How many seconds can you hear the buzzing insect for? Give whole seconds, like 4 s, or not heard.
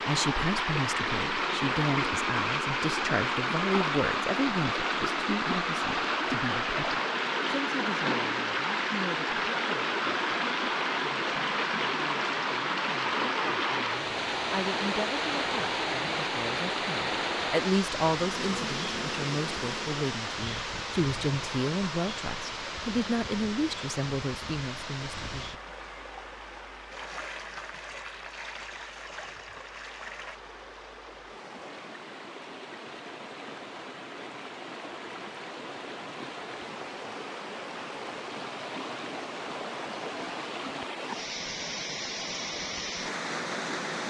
2 s.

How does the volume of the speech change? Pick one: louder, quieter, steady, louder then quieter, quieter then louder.
quieter then louder.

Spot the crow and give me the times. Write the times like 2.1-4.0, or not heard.
not heard.